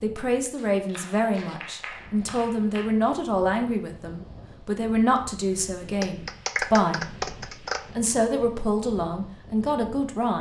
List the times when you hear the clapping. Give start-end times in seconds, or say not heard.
0.6-3.0, 6.0-7.8.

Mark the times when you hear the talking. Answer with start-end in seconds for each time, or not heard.
0.0-7.2, 8.0-10.3.